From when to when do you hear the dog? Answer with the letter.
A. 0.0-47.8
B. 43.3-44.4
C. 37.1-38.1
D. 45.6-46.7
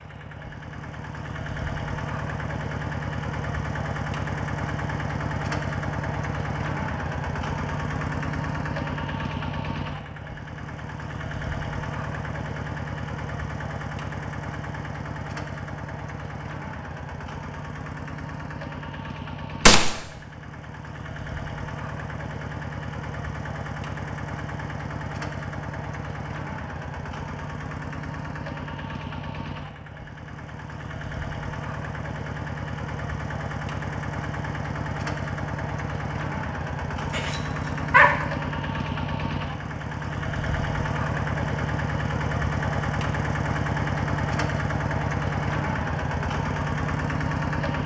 C.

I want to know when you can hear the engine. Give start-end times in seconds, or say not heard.
0.0-47.8.